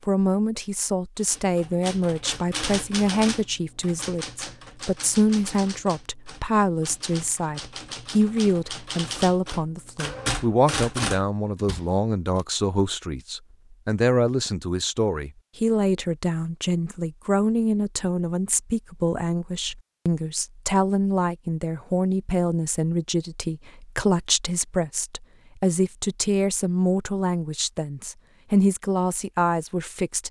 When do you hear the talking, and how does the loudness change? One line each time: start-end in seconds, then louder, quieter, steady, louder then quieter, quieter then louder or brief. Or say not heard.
0.1-30.2 steady.